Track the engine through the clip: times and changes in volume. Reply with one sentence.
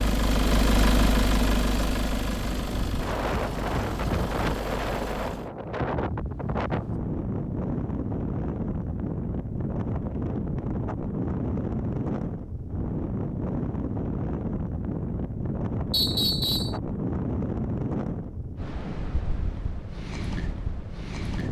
You can hear the engine from 0.0 to 5.5 s, getting quieter.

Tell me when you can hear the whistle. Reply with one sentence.
You can hear the whistle from 15.9 to 16.8 s.